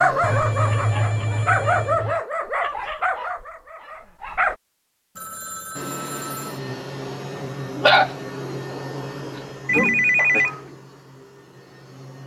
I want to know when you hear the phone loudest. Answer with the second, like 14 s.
10 s.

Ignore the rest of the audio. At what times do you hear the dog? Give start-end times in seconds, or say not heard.
0.0-4.5, 7.8-10.8.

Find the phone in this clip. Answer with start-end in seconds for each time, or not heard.
0.2-2.2, 5.2-6.6, 9.7-10.6.